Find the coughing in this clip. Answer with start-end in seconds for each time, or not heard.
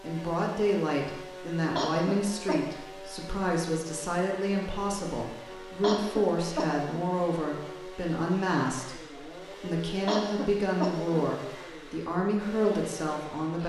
1.8-2.6, 5.8-7.0, 10.1-11.2.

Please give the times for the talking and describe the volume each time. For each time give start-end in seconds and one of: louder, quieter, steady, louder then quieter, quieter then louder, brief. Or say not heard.
0.0-13.6 steady.